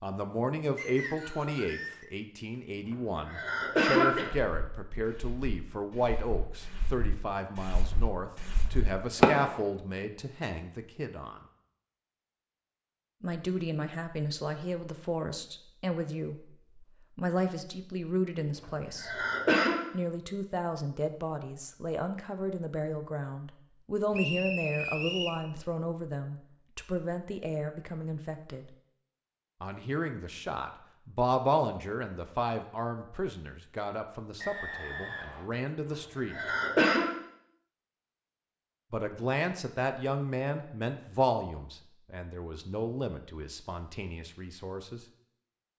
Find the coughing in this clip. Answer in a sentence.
You can hear the coughing from 2.9 to 4.3 s, from 18.6 to 19.8 s and from 35.9 to 37.1 s.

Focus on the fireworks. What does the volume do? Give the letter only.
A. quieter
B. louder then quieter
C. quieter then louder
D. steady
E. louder
E.